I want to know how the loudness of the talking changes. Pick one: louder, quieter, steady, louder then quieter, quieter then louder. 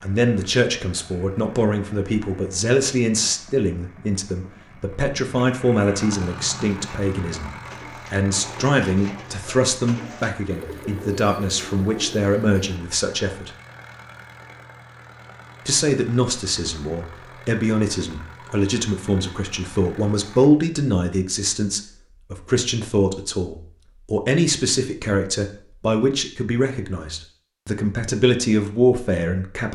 steady.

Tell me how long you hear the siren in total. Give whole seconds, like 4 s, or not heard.
not heard.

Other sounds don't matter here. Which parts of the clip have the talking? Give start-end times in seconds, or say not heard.
0.0-7.5, 8.1-13.5, 15.7-29.6.